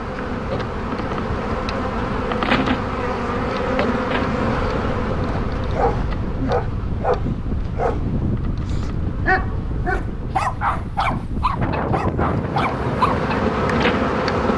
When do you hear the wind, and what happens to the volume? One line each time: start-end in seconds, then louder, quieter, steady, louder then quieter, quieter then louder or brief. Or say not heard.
0.0-14.5 louder.